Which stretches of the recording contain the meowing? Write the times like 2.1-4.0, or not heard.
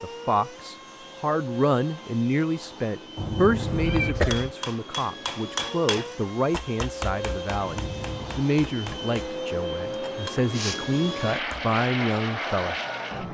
3.1-4.3, 7.6-8.4.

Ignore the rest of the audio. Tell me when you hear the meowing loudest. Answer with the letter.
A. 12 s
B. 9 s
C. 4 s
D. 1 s
C.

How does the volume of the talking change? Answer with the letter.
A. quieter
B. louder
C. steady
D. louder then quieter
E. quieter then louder
C.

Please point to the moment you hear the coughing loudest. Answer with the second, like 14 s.
4 s.